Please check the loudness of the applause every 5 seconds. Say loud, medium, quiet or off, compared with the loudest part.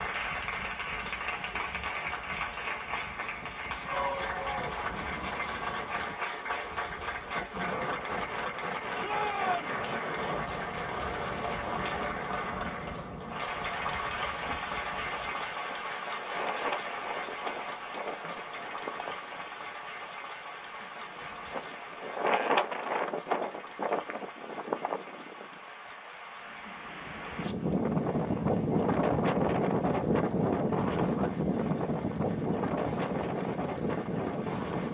loud, loud, loud, loud, medium, quiet, quiet.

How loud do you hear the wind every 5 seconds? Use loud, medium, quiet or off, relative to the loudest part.
quiet, quiet, quiet, medium, loud, loud, loud.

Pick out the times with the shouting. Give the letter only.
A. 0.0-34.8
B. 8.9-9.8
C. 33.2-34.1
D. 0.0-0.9
B.